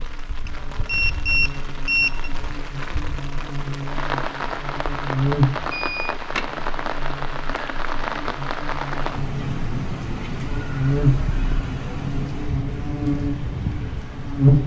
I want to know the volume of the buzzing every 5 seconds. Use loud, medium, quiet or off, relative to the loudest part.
quiet, medium, loud.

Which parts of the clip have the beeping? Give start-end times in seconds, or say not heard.
0.5-2.3, 5.8-6.2, 10.9-11.7.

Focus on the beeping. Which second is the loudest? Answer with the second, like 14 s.
2 s.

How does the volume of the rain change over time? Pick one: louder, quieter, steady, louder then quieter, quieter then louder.
louder.